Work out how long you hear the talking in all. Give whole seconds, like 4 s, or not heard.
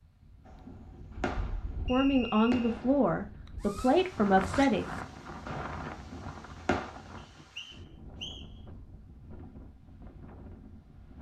3 s.